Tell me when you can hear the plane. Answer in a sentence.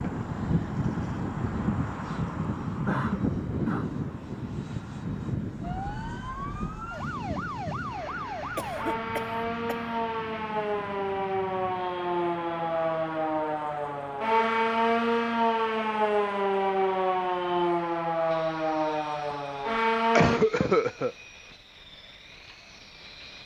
You can hear the plane from 0.0 to 23.4 s.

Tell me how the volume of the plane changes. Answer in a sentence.
The loudness of the plane goes down.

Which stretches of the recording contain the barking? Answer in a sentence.
The barking can't be heard in this clip.